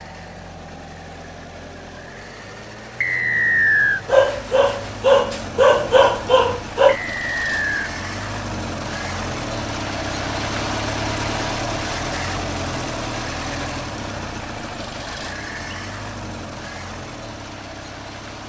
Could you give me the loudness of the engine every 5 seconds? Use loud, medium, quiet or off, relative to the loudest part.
medium, loud, loud, medium.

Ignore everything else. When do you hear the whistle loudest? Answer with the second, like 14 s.
4 s.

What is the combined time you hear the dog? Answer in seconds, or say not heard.
3 s.